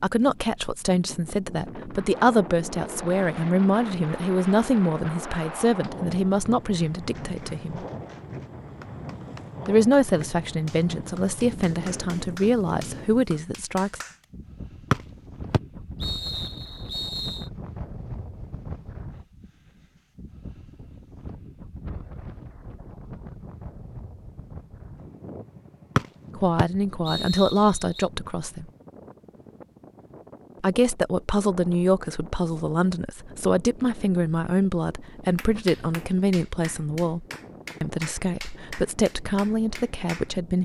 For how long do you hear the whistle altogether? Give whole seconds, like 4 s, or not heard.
5 s.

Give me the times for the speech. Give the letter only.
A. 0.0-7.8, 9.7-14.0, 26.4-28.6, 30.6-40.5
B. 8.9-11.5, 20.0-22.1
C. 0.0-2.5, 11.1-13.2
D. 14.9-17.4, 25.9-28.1
A.